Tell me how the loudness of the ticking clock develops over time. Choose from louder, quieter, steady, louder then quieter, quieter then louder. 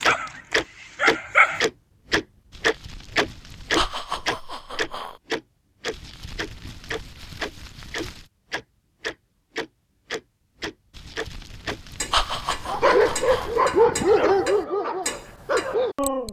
quieter.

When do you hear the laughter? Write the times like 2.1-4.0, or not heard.
3.8-5.2, 12.1-13.6.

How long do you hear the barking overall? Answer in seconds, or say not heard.
5 s.